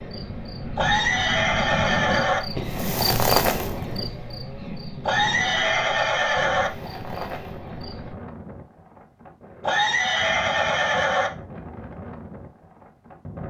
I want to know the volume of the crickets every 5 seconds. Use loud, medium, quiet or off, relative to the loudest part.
loud, medium, off.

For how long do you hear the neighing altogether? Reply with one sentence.
The neighing can be heard for 5 seconds in total.